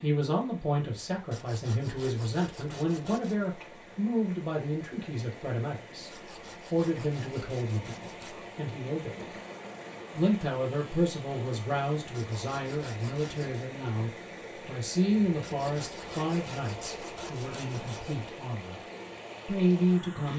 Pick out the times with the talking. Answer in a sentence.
The talking can be heard from 0.0 to 9.4 s, from 10.2 to 18.8 s and from 19.4 to 20.3 s.